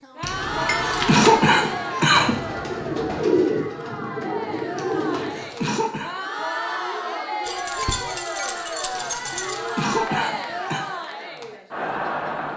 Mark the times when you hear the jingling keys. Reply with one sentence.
The jingling keys can be heard from 0.2 to 1.4 s and from 7.5 to 9.8 s.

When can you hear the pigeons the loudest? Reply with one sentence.
The loudest moment of the pigeons is at 3 seconds.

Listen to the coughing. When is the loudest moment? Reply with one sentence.
The loudest moment of the coughing is at 1 second.